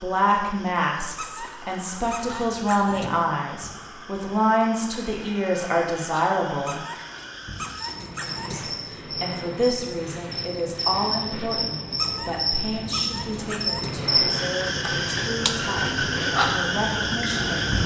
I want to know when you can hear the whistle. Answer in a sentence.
The whistle can't be heard in this clip.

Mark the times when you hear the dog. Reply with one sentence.
The dog can be heard from 1.1 to 3.1 s, from 6.7 to 8.6 s and from 11.9 to 13.9 s.